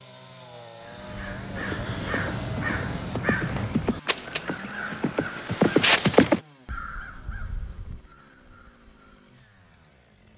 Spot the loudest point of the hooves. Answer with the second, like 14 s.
6 s.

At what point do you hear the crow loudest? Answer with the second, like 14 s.
6 s.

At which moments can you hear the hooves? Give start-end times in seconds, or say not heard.
1.6-6.4.